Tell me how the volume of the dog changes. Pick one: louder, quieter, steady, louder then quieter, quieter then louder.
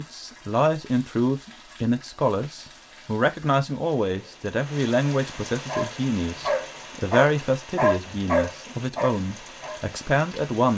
louder then quieter.